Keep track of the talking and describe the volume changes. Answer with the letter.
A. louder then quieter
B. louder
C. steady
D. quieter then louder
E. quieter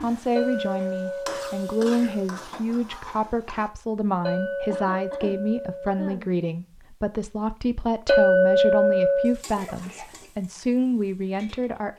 C.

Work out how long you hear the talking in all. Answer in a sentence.
You can hear the talking for 12 seconds altogether.